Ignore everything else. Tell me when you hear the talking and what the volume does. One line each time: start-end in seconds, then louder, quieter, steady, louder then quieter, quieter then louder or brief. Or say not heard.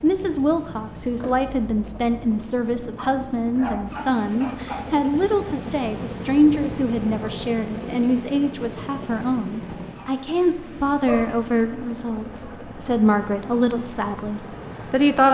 0.0-15.2 steady.